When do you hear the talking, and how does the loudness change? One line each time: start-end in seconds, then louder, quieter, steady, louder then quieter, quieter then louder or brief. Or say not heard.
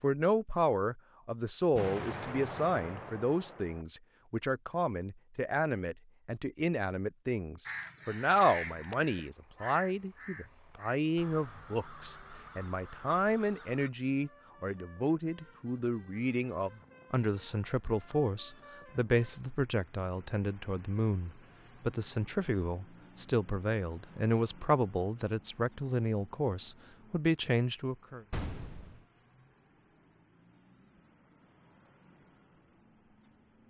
0.0-28.2 steady.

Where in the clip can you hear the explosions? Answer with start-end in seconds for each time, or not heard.
1.8-3.9, 28.3-29.1.